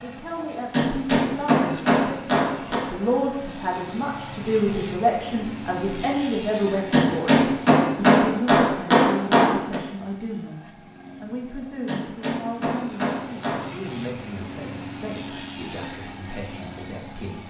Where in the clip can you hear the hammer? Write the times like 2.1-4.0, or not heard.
0.7-2.9, 6.9-9.8, 11.8-13.9.